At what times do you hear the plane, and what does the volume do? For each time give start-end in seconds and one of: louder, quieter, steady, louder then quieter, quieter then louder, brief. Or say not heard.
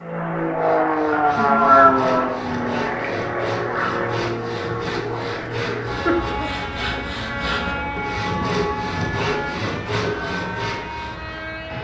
0.0-11.7 quieter.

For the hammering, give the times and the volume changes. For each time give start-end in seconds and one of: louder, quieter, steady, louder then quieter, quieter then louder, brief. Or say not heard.
not heard.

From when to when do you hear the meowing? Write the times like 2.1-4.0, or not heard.
1.1-2.2.